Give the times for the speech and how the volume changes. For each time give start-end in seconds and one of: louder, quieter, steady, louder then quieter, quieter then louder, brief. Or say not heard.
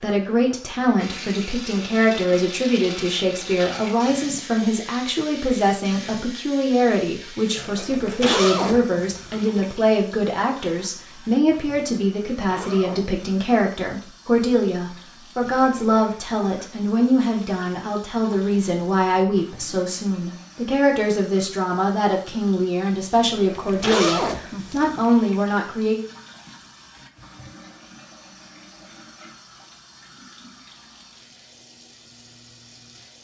0.0-25.9 steady.